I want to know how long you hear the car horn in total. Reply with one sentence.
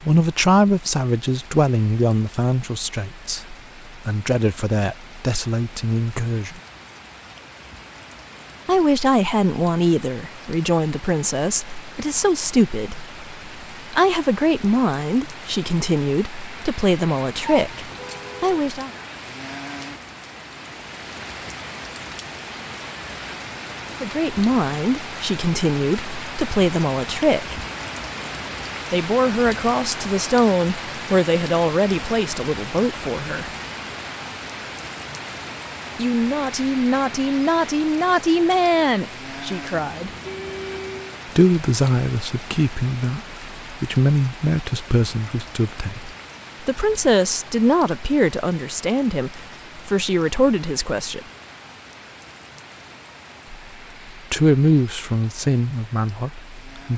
The car horn can be heard for 3 seconds in total.